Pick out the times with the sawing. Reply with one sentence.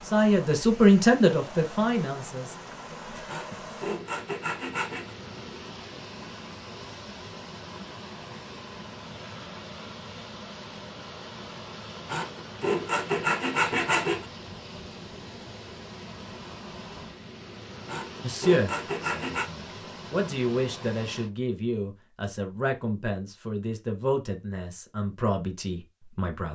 You can hear the sawing from 3.2 to 5.2 s, from 12.1 to 14.2 s and from 17.9 to 19.5 s.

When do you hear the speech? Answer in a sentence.
The speech can be heard from 0.1 to 2.5 s and from 18.2 to 26.5 s.